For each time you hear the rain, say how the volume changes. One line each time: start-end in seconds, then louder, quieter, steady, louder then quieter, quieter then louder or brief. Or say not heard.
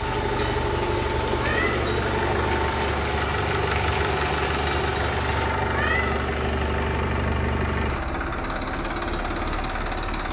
0.0-5.5 steady.